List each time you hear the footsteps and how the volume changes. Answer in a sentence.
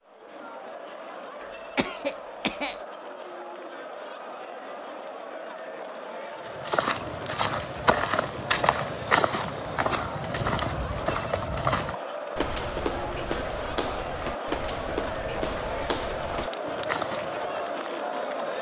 The footsteps can be heard from 6.3 to 17.6 s, getting quieter.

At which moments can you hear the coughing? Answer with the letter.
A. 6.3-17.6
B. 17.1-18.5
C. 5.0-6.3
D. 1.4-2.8
D.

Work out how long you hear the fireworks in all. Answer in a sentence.
You can't hear the fireworks here.